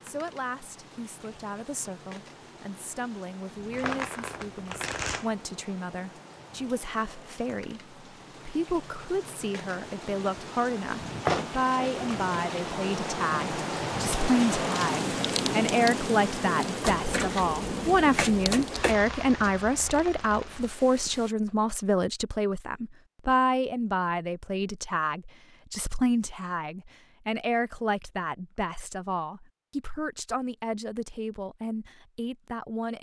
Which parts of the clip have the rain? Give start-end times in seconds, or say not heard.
0.0-21.3.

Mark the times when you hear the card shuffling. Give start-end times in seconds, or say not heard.
3.7-5.3, 16.8-18.9.